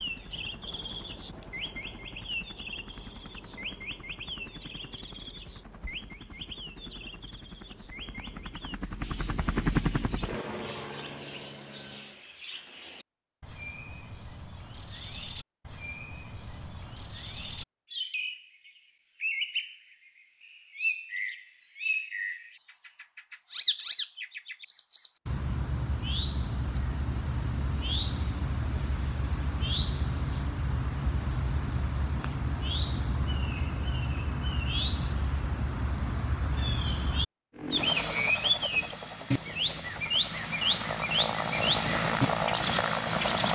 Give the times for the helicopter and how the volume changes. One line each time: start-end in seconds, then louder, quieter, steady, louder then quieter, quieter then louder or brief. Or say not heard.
0.0-12.2 louder
37.5-43.4 quieter then louder.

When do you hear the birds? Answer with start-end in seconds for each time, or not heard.
0.0-43.4.